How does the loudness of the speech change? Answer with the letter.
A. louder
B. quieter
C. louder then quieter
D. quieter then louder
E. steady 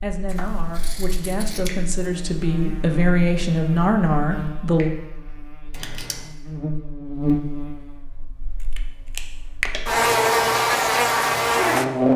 A.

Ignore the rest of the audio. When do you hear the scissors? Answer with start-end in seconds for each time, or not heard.
0.2-1.8, 5.7-6.3, 8.6-9.9.